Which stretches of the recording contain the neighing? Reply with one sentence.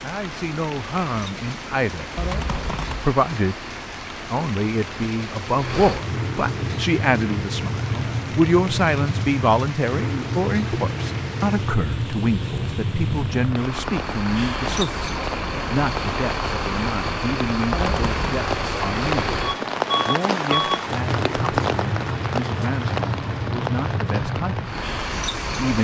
The neighing can be heard from 2.1 to 3.1 s and from 17.7 to 18.2 s.